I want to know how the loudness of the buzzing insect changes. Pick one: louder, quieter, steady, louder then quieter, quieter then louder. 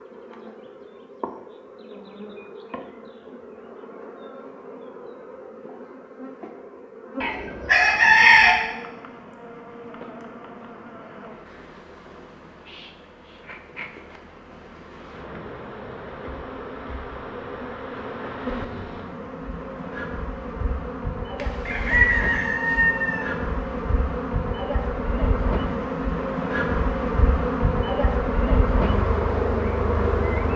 louder.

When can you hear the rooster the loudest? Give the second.
8 s.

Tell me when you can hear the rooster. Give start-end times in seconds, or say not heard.
7.2-8.6, 21.4-23.2.